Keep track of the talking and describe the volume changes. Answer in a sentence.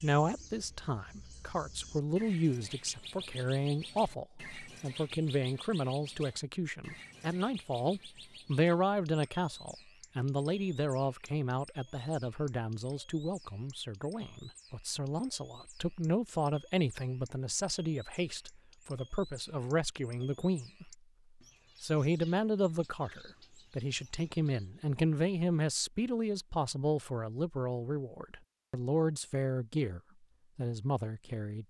The volume of the talking stays about the same.